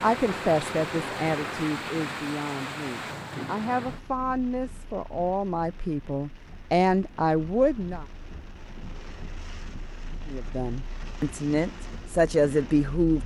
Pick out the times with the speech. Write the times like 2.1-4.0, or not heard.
0.0-8.1, 10.2-13.2.